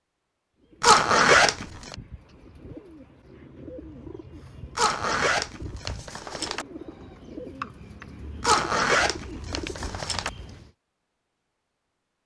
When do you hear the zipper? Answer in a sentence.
You can hear the zipper from 0.8 to 1.9 s, from 4.8 to 6.7 s and from 8.4 to 10.3 s.